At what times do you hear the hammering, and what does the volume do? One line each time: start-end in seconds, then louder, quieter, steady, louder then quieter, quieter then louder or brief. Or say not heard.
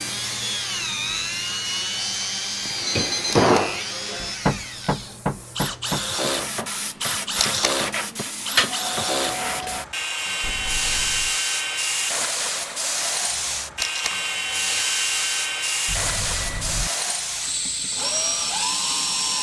2.8-9.1 quieter.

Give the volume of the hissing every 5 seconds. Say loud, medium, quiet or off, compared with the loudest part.
quiet, loud, loud, loud.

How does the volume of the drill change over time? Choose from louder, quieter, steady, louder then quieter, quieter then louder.
steady.